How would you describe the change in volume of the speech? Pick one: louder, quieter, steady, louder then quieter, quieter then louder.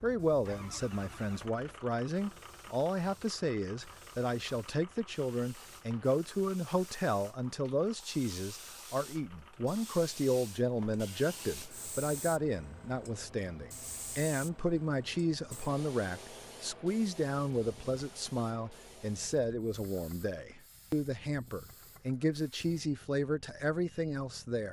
steady.